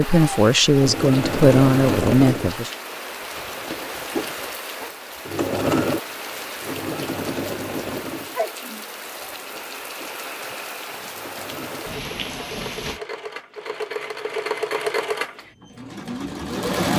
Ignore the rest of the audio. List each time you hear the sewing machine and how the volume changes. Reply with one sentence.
The sewing machine can be heard from 0.0 to 16.9 s, getting quieter then louder.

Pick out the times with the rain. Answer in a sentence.
The rain can be heard from 0.0 to 13.0 s.